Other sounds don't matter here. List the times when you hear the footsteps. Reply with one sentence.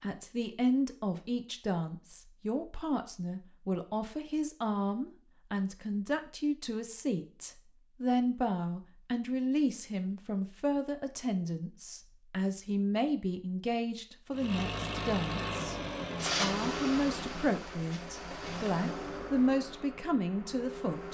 The footsteps can't be heard in this clip.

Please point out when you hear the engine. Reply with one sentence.
The engine can be heard from 14.3 to 21.1 s.